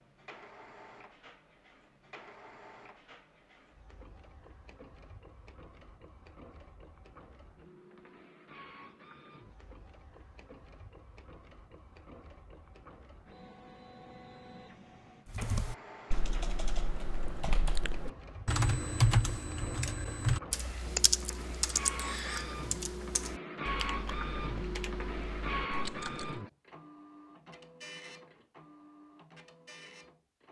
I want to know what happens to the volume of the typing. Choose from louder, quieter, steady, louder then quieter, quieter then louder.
louder then quieter.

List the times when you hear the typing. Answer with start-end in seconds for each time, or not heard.
15.3-26.4.